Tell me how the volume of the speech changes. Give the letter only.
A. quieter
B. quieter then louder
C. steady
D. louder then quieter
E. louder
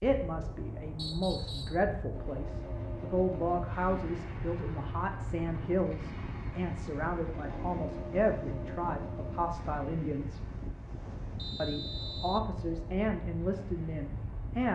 C.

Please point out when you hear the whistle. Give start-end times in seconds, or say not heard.
0.9-1.8, 11.3-12.4.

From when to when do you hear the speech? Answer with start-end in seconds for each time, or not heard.
0.0-10.4, 11.6-14.7.